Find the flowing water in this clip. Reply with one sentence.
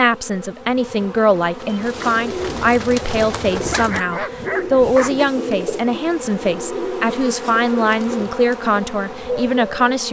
The flowing water can't be heard in this clip.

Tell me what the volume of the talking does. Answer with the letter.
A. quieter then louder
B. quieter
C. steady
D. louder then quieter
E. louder
C.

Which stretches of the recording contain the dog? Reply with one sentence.
The dog can be heard from 3.6 to 5.2 s.